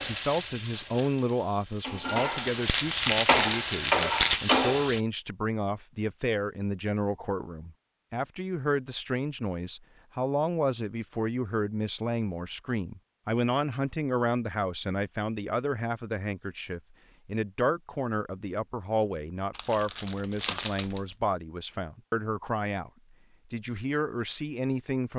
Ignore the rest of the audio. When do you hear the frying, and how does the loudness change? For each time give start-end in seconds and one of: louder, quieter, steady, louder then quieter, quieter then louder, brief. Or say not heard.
0.0-5.0 louder.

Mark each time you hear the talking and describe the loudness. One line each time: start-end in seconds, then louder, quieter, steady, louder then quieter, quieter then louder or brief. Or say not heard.
0.1-22.9 steady
23.5-25.1 brief.